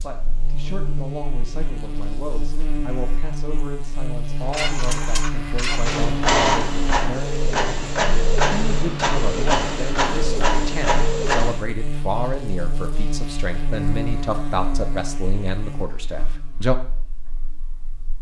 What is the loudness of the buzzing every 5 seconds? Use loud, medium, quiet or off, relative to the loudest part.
loud, loud, loud, medium.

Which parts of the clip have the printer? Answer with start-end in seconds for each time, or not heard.
4.5-11.7.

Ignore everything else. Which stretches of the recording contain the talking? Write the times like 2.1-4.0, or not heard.
0.0-16.8.